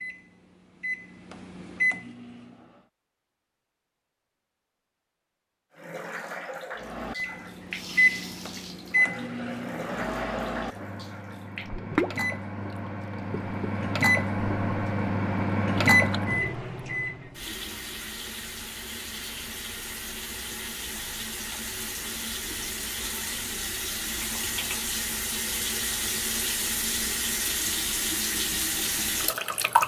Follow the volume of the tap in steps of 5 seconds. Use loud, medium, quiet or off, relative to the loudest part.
off, medium, medium, medium, medium, loud.